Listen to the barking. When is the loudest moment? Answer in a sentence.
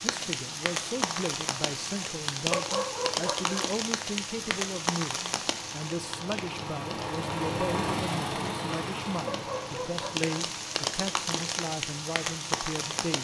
The loudest moment of the barking is at 3 seconds.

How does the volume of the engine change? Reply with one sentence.
The loudness of the engine goes up, then down.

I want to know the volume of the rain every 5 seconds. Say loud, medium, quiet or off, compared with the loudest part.
loud, medium, loud.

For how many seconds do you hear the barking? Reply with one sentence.
You can hear the barking for 2 seconds altogether.